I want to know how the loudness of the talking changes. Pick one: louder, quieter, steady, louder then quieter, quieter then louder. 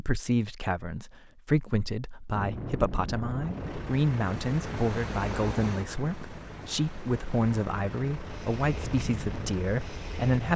steady.